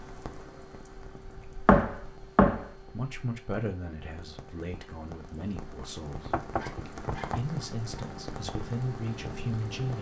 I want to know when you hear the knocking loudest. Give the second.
2 s.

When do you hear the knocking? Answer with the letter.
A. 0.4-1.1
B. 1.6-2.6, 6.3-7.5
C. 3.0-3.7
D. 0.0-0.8
B.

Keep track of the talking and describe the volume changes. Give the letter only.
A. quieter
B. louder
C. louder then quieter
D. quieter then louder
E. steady
D.